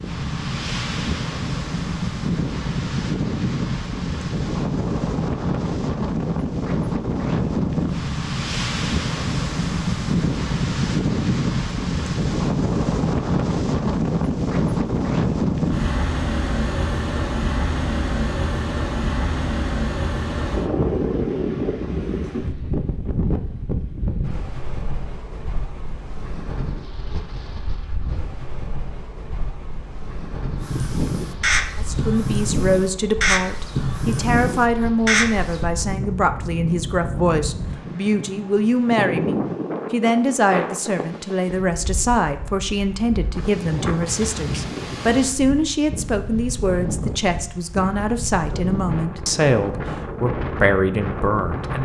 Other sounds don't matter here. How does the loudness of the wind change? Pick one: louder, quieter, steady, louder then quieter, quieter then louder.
quieter.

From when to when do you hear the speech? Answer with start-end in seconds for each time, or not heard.
31.8-51.7.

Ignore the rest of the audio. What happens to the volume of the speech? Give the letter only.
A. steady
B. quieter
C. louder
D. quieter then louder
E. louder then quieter
A.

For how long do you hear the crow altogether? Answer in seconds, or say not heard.
5 s.